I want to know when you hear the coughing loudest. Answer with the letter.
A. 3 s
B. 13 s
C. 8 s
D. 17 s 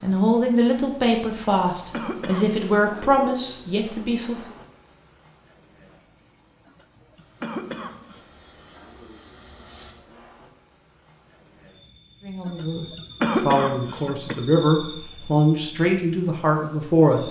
B.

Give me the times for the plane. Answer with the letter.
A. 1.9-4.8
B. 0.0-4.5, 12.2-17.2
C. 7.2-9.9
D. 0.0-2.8
C.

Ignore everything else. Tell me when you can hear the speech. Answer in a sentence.
You can hear the speech from 0.0 to 4.5 s and from 12.2 to 17.2 s.